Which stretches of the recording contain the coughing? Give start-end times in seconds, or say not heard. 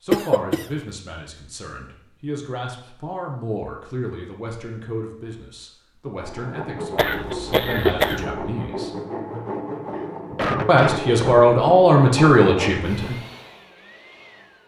0.1-0.7, 7.0-8.2, 9.9-11.4.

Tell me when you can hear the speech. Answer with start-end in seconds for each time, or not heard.
0.0-8.9, 10.7-13.2.